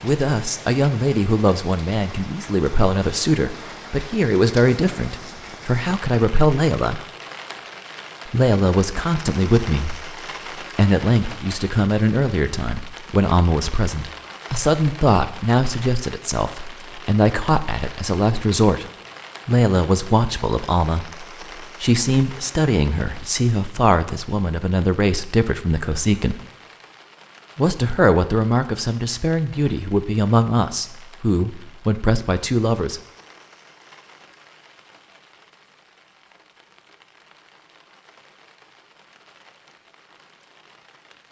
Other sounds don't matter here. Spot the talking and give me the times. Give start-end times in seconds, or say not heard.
0.0-7.0, 8.2-10.2, 10.8-18.9, 19.4-26.4, 27.6-33.0.